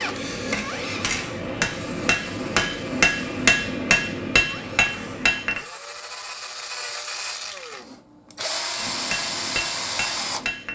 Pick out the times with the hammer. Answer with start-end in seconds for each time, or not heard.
0.0-5.6, 8.7-10.7.